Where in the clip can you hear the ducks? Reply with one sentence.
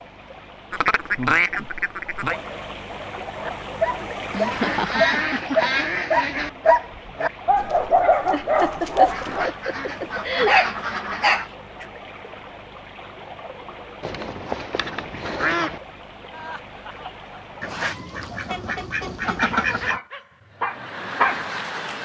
The ducks can be heard from 0.7 to 2.4 s, from 4.5 to 6.5 s, from 9.1 to 11.5 s, from 14.0 to 15.8 s and from 17.6 to 20.0 s.